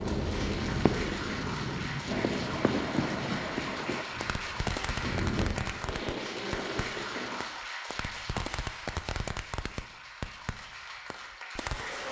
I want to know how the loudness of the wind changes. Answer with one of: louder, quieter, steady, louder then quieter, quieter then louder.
quieter then louder.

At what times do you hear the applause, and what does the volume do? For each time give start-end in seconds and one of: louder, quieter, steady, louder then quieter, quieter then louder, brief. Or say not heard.
0.0-12.0 quieter.